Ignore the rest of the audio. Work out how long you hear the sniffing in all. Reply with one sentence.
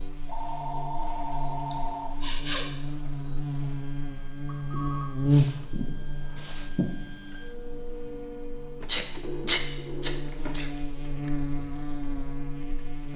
You can hear the sniffing for 5 seconds altogether.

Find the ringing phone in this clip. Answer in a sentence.
You can hear the ringing phone from 0.2 to 2.1 s, from 4.5 to 6.6 s and from 9.2 to 10.7 s.